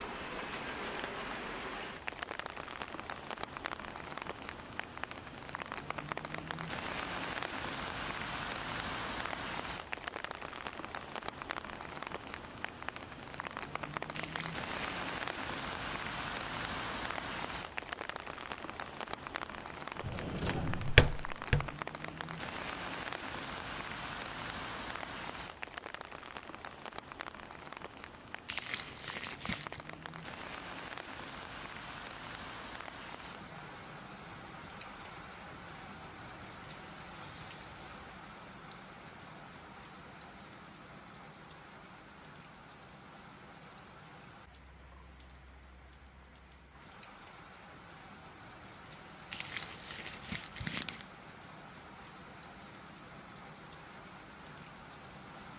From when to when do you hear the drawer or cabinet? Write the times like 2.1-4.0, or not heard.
20.0-21.7.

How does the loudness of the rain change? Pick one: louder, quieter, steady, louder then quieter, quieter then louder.
quieter.